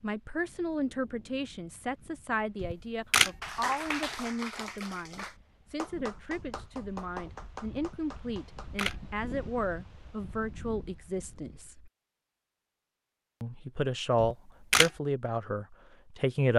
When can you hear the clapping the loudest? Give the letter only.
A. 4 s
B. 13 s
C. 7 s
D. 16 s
A.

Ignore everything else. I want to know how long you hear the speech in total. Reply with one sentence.
The speech can be heard for 15 seconds in total.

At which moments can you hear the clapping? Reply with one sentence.
You can hear the clapping from 3.4 to 8.8 s.